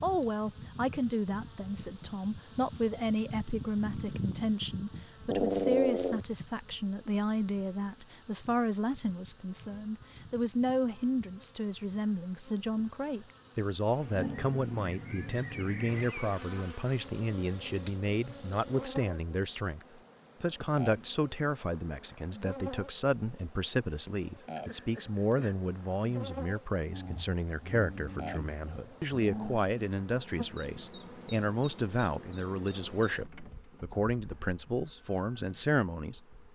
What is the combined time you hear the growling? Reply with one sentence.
You can hear the growling for 6 seconds altogether.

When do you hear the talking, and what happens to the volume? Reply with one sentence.
The talking can be heard from 0.0 to 36.4 s, at a steady volume.